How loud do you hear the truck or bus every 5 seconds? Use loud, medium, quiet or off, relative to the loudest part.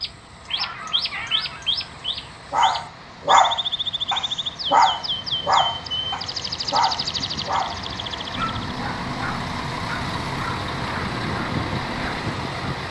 quiet, medium, loud.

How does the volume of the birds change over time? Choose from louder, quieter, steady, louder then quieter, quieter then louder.
steady.